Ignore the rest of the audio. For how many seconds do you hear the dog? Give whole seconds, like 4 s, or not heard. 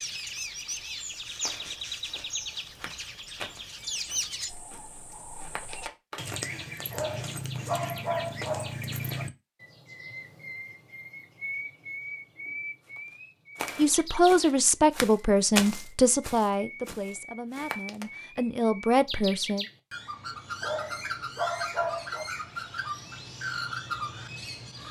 4 s.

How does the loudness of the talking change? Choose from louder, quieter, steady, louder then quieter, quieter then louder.
quieter then louder.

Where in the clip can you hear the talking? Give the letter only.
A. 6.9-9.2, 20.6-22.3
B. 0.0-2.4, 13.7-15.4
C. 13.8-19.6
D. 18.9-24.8
C.